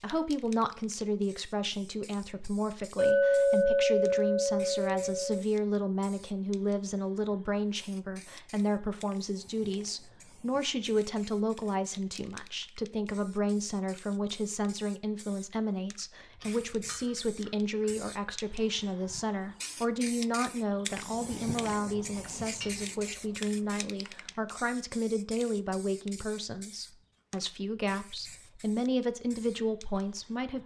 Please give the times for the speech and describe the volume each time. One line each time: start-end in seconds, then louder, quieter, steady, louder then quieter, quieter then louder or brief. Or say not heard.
0.0-30.6 steady.